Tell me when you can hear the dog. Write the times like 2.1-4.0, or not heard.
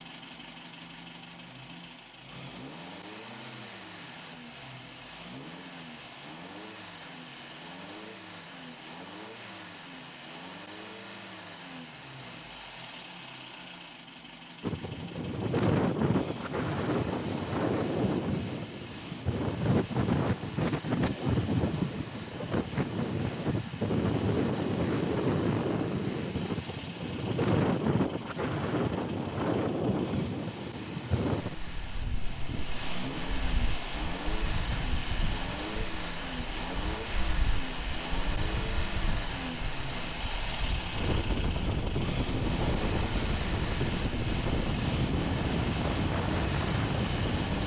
not heard.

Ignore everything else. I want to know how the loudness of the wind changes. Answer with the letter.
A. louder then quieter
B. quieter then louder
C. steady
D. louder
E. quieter
B.